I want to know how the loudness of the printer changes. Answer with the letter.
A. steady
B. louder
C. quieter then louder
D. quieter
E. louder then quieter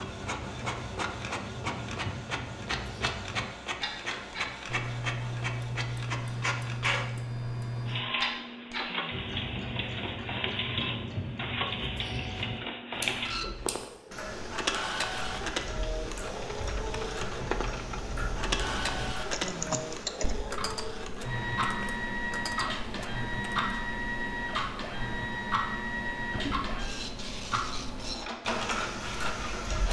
A.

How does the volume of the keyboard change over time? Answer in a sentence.
The volume of the keyboard goes up, then down.